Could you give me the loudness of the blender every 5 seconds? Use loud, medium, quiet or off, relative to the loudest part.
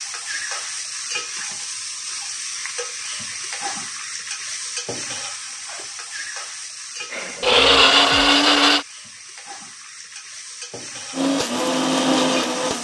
off, loud, medium.